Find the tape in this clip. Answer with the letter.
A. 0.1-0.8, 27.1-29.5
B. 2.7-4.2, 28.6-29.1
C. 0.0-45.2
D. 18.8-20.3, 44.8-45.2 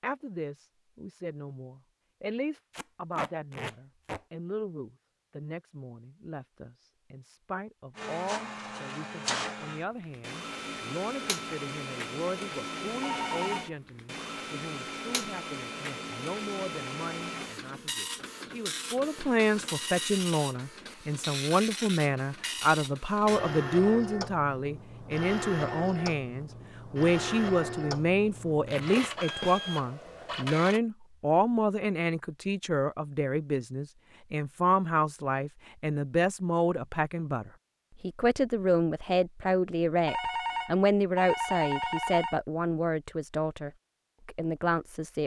B.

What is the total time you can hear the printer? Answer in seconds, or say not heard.
23 s.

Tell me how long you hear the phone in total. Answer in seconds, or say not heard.
3 s.